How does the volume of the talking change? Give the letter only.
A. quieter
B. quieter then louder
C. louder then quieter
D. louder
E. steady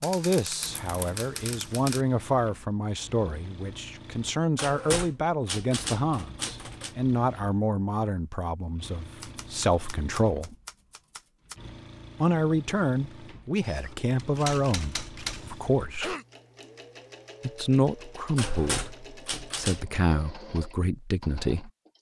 E.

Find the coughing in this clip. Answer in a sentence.
The coughing can be heard from 15.3 to 16.2 s.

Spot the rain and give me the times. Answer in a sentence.
The rain can't be heard in this clip.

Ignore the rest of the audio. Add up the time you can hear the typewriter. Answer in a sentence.
You can hear the typewriter for 10 seconds altogether.